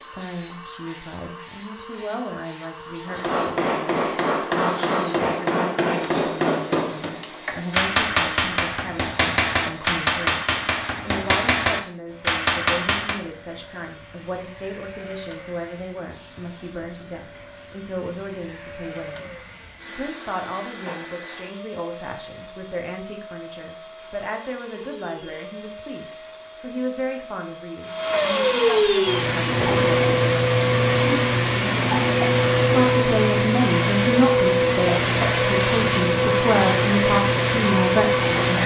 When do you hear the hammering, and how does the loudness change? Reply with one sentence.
You can hear the hammering from 3.0 to 13.2 s, at a steady volume.